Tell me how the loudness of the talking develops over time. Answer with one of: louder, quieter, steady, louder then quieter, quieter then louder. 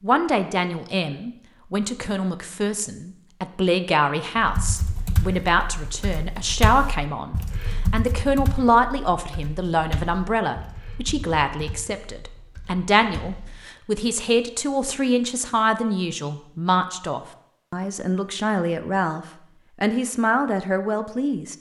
steady.